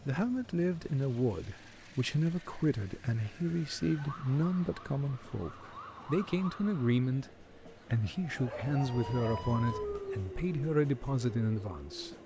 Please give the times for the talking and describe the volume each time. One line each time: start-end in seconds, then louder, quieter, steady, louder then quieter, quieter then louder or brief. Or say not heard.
0.1-12.1 steady.